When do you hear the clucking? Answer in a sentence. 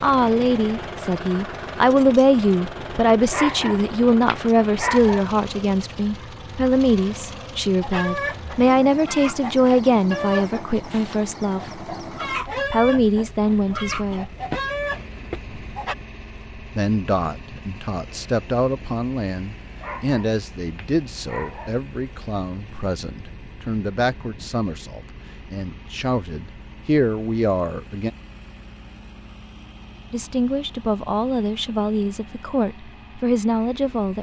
The clucking can be heard from 7.8 to 15.9 s.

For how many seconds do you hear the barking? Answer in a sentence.
The barking can be heard for 4 seconds in total.